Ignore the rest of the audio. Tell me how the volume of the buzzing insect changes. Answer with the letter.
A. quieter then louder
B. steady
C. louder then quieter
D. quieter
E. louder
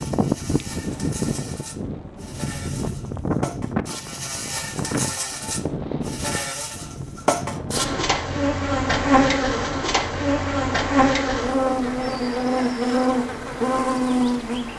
E.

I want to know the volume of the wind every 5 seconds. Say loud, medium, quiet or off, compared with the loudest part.
loud, medium, medium.